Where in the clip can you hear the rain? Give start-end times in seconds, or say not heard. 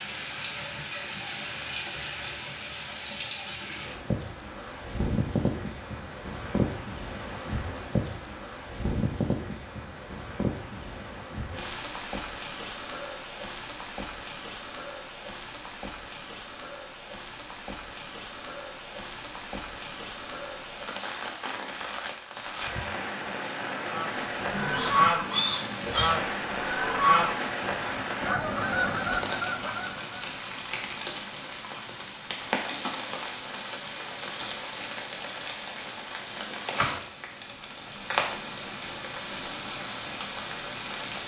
0.0-41.2.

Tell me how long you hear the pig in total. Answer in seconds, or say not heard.
2 s.